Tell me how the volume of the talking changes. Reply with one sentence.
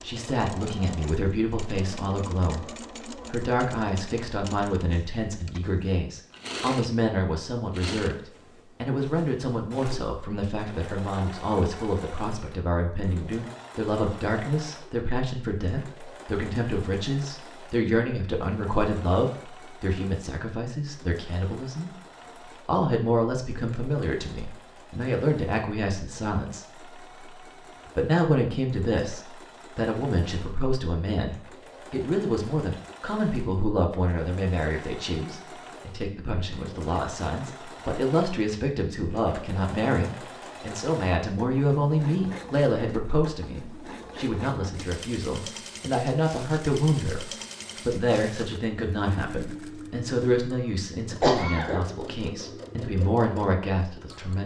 The loudness of the talking stays about the same.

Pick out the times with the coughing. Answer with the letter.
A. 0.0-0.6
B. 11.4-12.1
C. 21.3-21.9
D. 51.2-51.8
D.